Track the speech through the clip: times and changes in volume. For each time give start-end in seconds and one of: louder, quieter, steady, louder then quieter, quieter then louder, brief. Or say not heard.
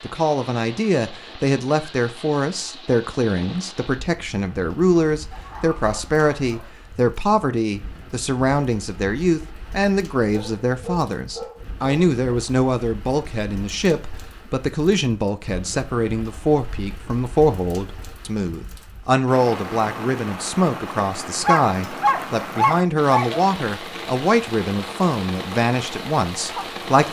0.0-27.0 steady.